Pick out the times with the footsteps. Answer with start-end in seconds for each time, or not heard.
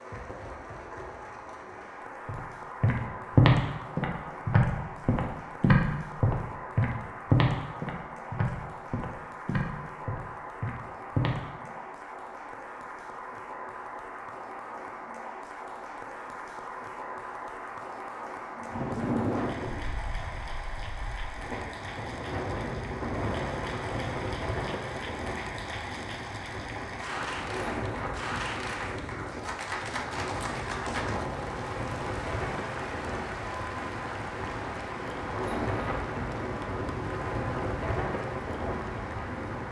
2.2-11.7.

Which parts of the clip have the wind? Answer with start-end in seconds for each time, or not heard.
18.6-39.6.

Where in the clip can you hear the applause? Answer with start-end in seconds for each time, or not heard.
0.0-39.6.